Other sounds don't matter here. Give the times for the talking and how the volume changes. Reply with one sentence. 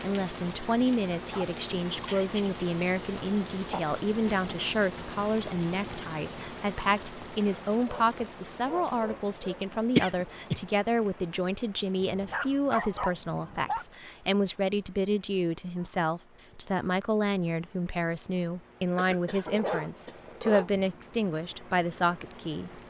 The talking can be heard from 0.0 to 22.8 s, at a steady volume.